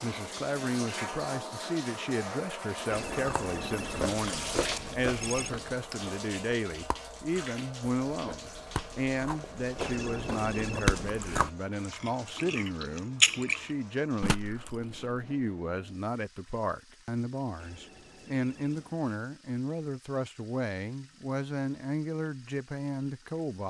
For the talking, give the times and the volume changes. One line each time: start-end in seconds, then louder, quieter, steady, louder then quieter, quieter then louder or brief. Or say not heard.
0.0-23.6 steady.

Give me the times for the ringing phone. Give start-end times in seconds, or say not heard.
2.9-5.5, 9.8-11.6, 17.6-19.1.